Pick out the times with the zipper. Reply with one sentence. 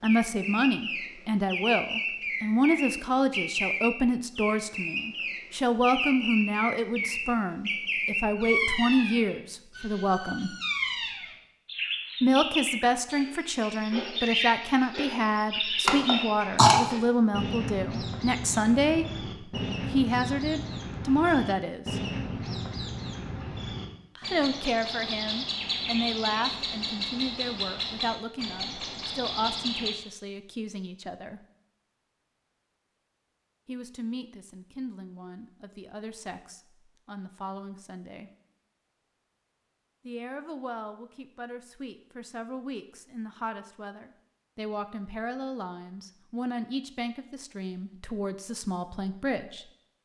You can't hear the zipper here.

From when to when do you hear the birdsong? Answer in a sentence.
You can hear the birdsong from 0.0 to 29.9 s.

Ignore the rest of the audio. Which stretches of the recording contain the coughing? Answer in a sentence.
The coughing can be heard from 15.8 to 16.8 s.